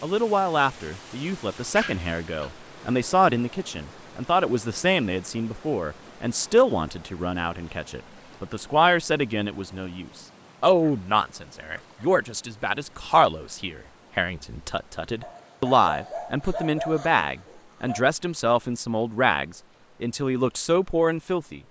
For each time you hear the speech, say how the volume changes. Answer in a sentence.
The speech can be heard from 0.0 to 21.6 s, at a steady volume.